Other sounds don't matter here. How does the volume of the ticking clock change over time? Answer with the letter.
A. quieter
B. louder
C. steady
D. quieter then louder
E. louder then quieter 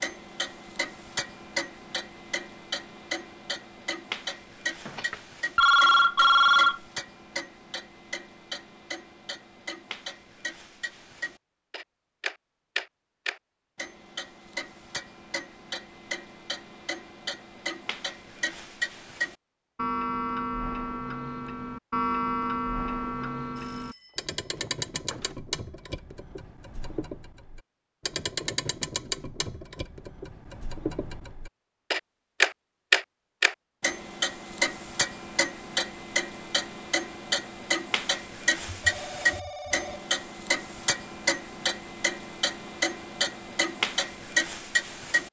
B.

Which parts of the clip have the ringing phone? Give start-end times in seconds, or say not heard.
4.8-6.8, 23.6-25.4, 38.8-40.1.